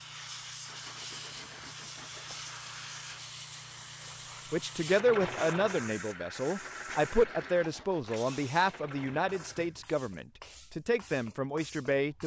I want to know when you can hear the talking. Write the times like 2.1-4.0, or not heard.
4.5-12.2.